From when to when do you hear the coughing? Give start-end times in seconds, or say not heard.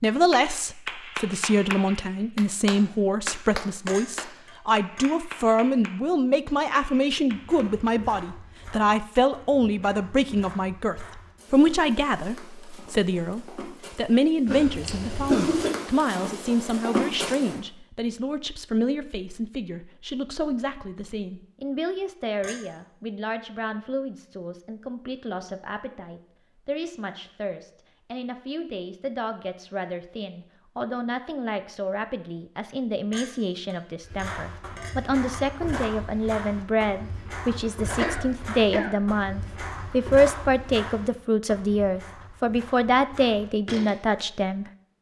14.4-15.7, 38.0-39.6.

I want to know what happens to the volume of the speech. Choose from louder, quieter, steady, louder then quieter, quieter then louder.
quieter then louder.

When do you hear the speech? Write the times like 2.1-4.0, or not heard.
0.0-44.9.